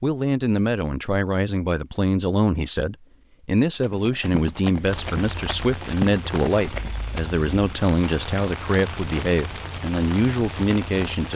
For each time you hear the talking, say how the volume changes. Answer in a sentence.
You can hear the talking from 0.0 to 11.3 s, at a steady volume.